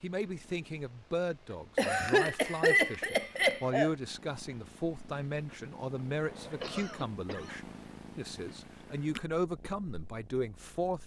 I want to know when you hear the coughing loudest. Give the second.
3 s.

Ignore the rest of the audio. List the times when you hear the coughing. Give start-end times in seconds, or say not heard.
1.8-3.9, 6.6-7.6.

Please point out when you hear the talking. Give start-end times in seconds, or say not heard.
0.0-11.0.